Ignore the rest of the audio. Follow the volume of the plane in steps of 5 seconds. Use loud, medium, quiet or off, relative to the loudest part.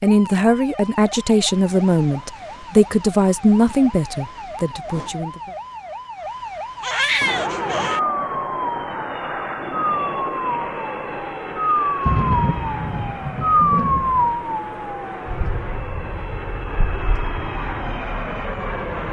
off, loud, loud, loud.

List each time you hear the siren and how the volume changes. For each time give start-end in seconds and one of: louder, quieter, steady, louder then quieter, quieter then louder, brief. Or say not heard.
0.0-18.8 louder then quieter.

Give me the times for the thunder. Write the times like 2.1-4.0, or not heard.
12.1-14.3.